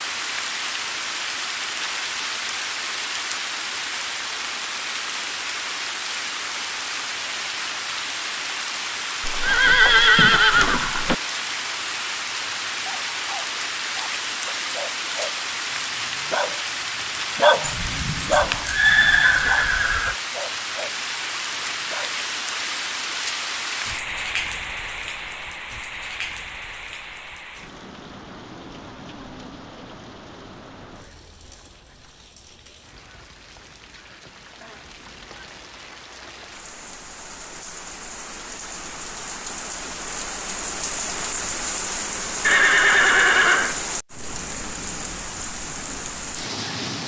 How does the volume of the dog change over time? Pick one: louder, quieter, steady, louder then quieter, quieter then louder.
louder then quieter.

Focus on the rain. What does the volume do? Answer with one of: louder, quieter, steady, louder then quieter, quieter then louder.
quieter then louder.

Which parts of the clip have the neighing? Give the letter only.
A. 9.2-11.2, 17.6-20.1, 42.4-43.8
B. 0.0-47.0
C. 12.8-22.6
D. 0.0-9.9
A.